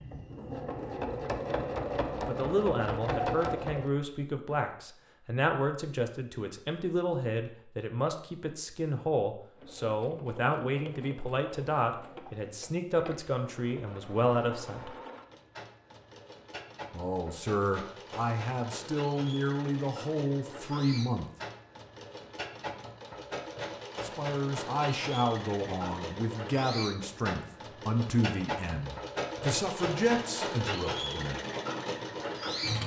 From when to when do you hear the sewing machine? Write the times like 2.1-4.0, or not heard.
0.0-3.9, 9.6-32.8.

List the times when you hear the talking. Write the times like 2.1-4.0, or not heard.
2.2-14.9, 16.9-21.3, 24.0-31.4.